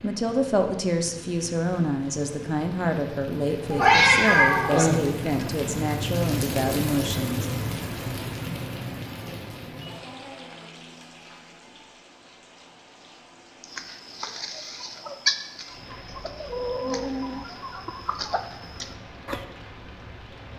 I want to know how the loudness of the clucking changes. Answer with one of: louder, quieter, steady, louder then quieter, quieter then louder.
louder then quieter.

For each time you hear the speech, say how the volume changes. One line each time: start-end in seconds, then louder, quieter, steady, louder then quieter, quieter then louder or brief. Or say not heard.
0.0-7.5 steady.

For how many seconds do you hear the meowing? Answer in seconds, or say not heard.
2 s.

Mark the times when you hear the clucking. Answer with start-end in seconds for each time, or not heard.
13.6-19.4.